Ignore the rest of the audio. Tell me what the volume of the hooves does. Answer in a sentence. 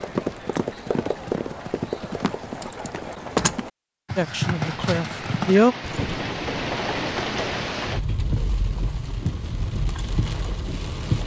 The volume of the hooves goes down.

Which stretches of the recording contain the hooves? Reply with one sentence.
The hooves can be heard from 0.0 to 11.2 s.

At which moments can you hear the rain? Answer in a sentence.
The rain can be heard from 4.5 to 11.2 s.